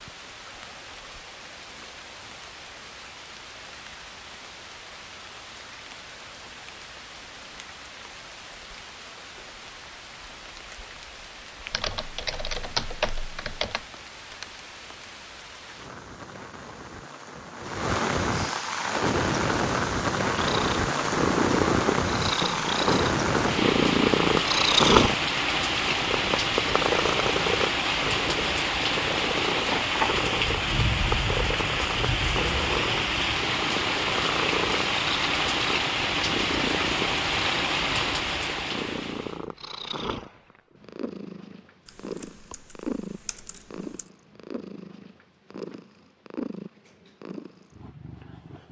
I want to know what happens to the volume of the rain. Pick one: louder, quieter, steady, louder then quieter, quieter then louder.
louder.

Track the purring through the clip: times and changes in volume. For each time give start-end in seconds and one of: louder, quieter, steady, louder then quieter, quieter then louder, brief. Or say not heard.
20.3-48.6 quieter.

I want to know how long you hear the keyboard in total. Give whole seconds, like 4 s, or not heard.
4 s.